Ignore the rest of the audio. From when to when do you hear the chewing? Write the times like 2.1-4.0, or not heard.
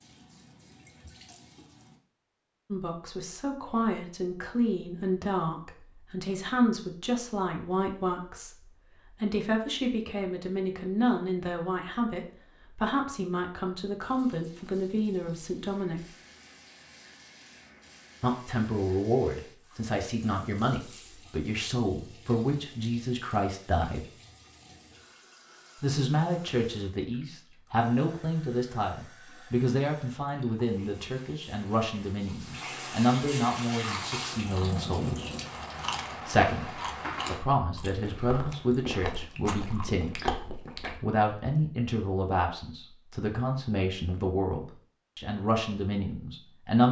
33.7-41.0.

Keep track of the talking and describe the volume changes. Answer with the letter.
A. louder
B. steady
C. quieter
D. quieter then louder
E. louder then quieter
B.